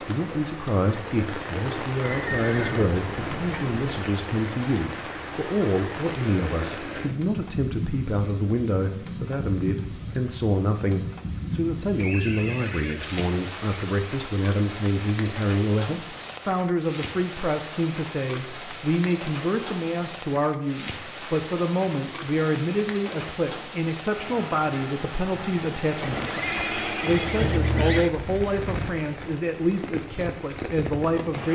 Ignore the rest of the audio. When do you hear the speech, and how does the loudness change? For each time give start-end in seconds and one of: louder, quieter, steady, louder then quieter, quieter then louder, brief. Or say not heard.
0.1-31.4 steady.